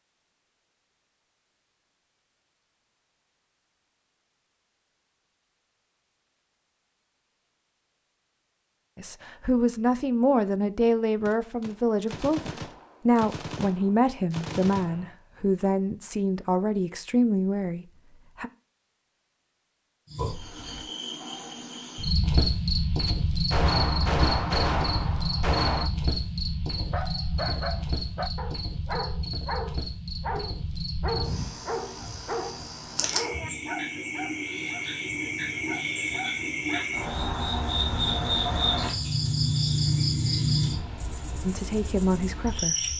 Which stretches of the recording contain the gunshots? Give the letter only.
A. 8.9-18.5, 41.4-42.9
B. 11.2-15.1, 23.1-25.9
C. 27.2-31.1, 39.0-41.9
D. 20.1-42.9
B.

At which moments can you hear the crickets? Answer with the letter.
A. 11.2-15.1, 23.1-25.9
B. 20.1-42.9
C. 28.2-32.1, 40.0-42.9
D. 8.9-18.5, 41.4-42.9
B.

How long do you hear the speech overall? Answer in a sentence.
The speech can be heard for 11 seconds in total.